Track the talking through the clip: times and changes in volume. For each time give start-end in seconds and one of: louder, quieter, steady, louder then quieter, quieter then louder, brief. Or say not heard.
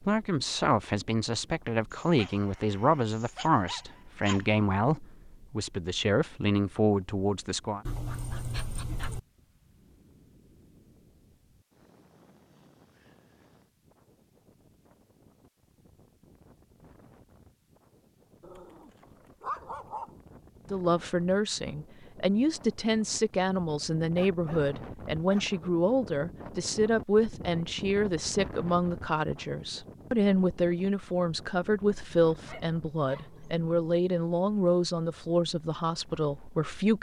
0.0-7.8 steady
20.7-36.9 steady.